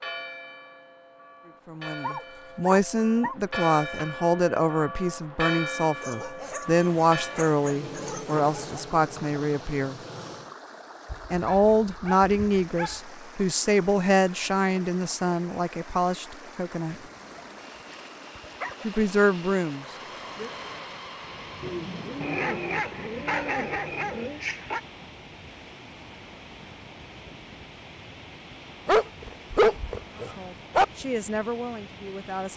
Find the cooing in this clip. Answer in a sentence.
You can hear the cooing from 21.6 to 24.4 s.